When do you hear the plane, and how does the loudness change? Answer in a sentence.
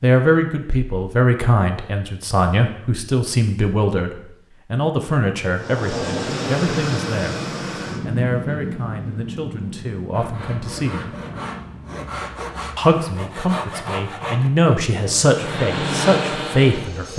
You can hear the plane from 5.5 to 12.1 s, getting quieter; and briefly from 15.2 to 17.1 s.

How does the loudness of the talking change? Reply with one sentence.
The volume of the talking goes down, then up.